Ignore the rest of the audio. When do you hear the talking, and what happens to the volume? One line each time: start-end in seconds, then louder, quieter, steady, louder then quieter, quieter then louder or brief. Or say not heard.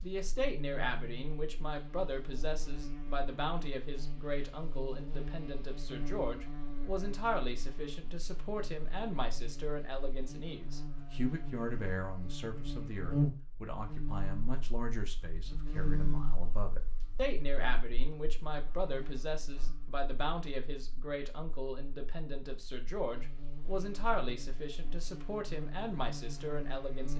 0.0-27.1 steady.